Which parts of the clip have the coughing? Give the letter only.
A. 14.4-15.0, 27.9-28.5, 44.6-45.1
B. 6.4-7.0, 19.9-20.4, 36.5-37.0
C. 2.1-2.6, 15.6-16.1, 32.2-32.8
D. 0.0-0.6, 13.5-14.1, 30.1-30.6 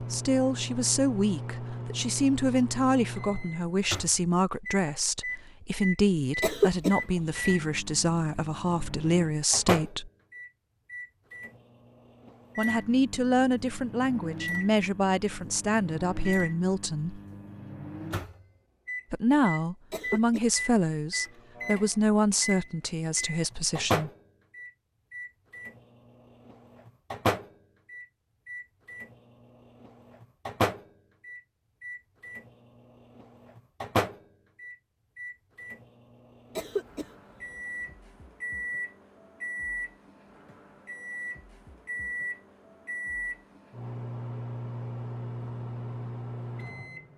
B.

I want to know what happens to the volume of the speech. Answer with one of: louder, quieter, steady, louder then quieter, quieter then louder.
steady.